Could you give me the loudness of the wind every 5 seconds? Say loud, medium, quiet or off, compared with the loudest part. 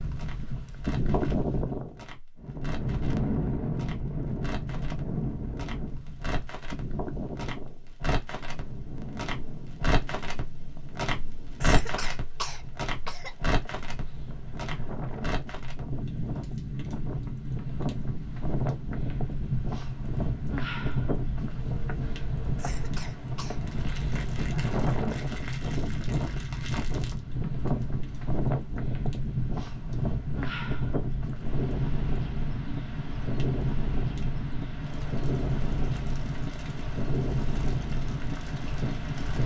loud, medium, quiet, loud, loud, loud, loud, loud.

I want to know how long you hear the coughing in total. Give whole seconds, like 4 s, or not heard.
3 s.